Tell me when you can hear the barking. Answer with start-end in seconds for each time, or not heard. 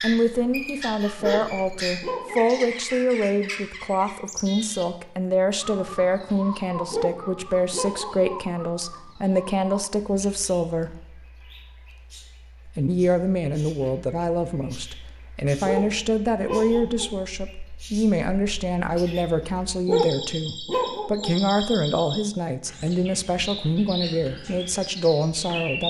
1.2-2.6, 6.9-8.3, 15.6-17.1, 19.9-21.4.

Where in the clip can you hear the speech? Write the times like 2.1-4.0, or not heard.
0.0-10.9, 12.7-25.8.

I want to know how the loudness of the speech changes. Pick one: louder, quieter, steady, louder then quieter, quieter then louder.
steady.